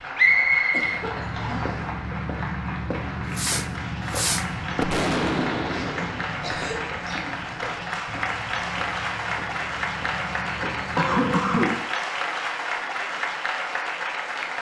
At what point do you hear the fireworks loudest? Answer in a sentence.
The loudest moment of the fireworks is at 5 seconds.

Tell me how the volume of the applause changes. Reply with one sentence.
The volume of the applause goes up.